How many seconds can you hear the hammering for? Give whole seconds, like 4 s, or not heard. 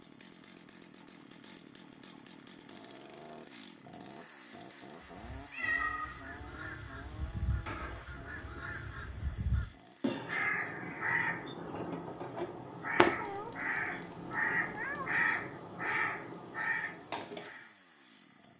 not heard.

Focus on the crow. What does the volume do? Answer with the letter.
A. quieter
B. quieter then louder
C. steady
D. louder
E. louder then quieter
D.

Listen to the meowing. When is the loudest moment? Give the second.
6 s.